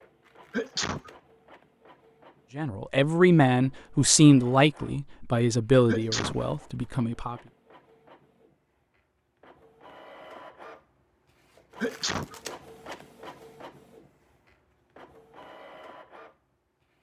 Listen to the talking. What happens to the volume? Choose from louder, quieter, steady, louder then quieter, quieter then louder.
quieter.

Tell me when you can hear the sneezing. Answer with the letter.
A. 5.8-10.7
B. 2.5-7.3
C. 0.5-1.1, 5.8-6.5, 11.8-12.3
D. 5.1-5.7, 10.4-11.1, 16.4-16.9
C.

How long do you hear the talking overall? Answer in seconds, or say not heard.
5 s.